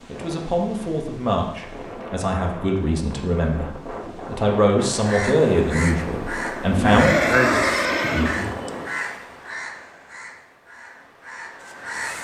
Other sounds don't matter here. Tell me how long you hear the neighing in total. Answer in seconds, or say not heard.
2 s.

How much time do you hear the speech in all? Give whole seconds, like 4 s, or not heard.
7 s.